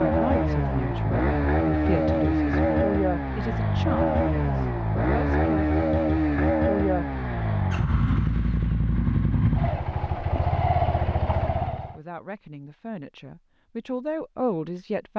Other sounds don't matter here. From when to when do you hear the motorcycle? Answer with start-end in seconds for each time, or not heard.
0.0-12.0.